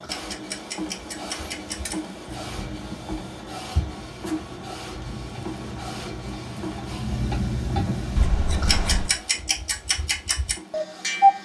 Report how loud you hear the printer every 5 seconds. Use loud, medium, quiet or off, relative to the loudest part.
loud, loud, medium.